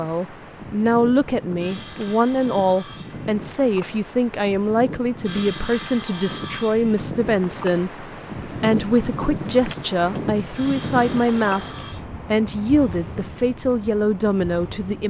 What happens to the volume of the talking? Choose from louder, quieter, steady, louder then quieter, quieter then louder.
steady.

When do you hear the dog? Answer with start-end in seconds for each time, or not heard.
not heard.